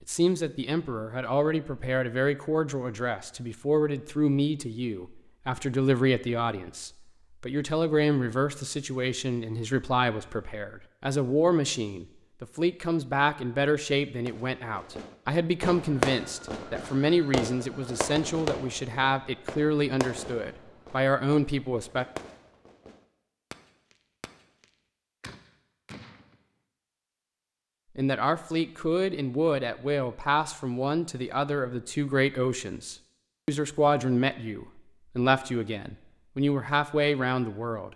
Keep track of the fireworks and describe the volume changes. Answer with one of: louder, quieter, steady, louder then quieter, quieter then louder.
quieter.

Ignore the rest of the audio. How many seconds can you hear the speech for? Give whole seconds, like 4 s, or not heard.
32 s.